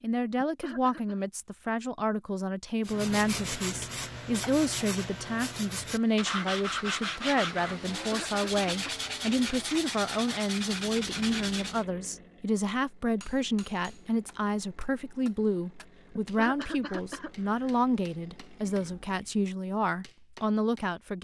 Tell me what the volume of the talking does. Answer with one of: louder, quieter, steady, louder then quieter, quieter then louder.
steady.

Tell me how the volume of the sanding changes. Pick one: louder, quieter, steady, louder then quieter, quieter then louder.
steady.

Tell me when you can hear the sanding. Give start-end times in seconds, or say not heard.
2.8-11.8.